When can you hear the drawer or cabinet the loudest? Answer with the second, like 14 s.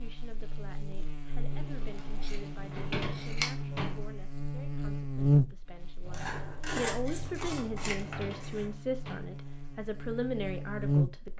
3 s.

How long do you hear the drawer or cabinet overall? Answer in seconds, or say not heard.
3 s.